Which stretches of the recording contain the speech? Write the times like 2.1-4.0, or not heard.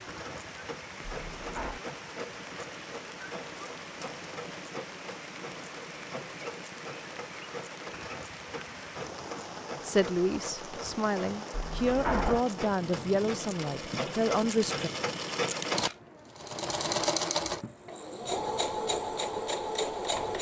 9.8-14.9.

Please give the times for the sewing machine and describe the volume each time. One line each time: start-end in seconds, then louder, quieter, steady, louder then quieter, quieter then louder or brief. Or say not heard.
0.0-20.3 louder.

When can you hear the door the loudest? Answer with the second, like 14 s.
12 s.